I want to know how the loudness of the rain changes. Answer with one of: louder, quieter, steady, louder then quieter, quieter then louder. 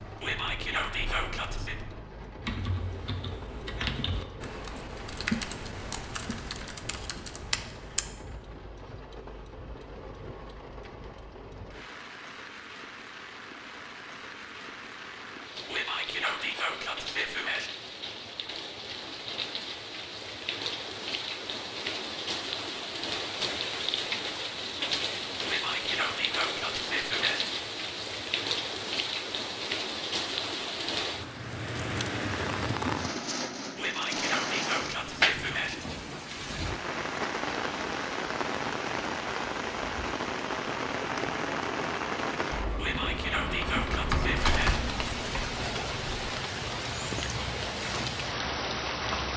louder.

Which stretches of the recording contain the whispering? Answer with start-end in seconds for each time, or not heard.
0.2-1.8, 15.7-17.7, 25.4-27.4, 33.8-35.8, 42.8-44.8.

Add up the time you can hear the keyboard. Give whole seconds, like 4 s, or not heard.
14 s.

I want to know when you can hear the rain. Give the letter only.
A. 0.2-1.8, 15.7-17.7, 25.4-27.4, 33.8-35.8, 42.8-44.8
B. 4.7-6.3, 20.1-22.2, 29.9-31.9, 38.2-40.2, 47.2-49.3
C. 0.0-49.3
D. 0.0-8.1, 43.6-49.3
C.